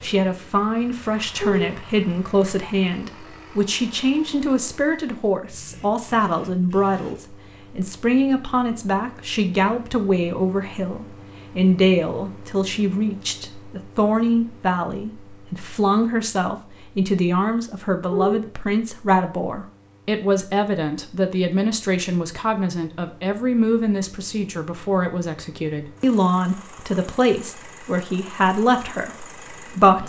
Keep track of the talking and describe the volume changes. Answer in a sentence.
The volume of the talking stays about the same.